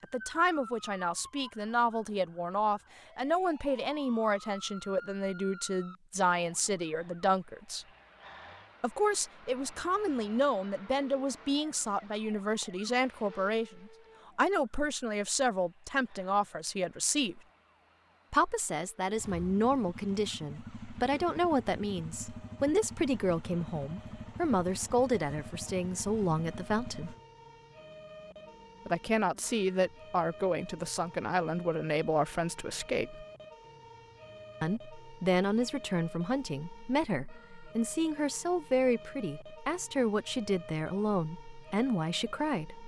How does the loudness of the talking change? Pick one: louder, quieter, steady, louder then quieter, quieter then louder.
steady.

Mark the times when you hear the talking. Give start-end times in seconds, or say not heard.
0.0-7.8, 8.8-17.4, 18.3-27.1, 28.9-33.2, 34.6-42.8.